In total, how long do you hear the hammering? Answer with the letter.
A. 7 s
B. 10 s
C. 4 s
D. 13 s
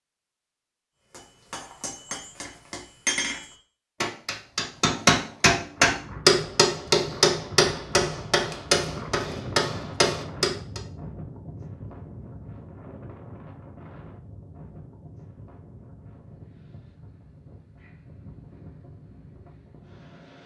B.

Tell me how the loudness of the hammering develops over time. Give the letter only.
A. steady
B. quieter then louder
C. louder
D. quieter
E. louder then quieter
E.